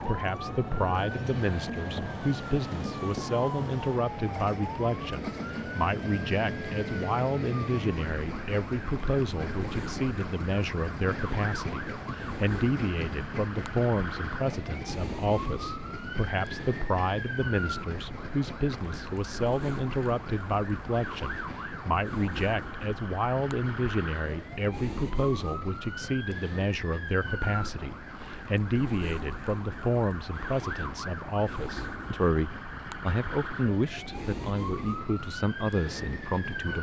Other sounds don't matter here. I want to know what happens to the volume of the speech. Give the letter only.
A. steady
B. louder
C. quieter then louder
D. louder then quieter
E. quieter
A.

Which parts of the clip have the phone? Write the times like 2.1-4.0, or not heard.
not heard.